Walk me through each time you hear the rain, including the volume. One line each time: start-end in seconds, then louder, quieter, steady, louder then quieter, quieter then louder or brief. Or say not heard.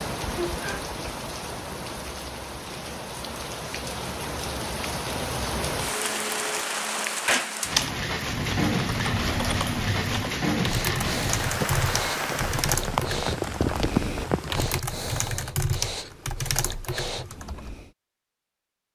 0.0-14.8 louder.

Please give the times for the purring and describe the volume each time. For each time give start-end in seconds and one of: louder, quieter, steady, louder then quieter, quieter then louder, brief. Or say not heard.
not heard.